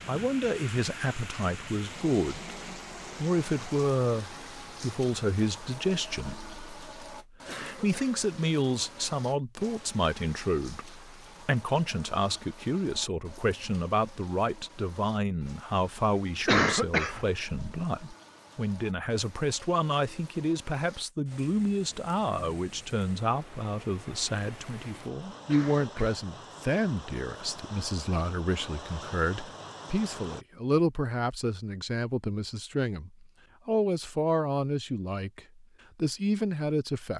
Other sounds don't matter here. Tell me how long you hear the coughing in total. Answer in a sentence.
You can hear the coughing for 2 seconds altogether.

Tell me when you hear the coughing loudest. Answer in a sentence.
The volume of the coughing peaks at 17 seconds.